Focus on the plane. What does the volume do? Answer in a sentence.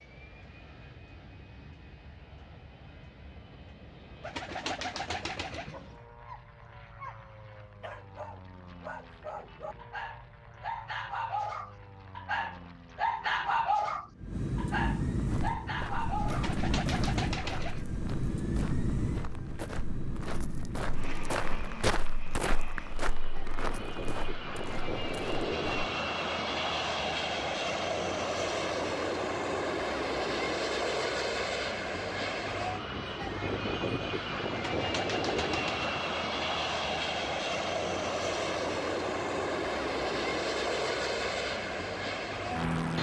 The volume of the plane goes up.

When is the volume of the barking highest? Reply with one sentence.
The volume of the barking peaks at 14 seconds.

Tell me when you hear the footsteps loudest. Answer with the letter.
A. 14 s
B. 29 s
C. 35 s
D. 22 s
D.